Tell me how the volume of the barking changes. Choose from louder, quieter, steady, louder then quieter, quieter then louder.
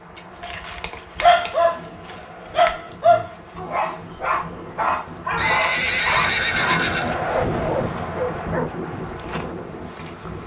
quieter.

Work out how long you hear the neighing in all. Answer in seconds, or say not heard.
2 s.